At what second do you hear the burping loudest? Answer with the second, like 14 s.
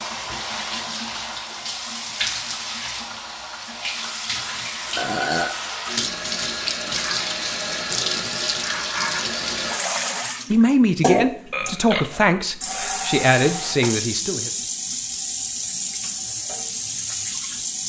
5 s.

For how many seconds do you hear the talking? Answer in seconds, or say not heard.
4 s.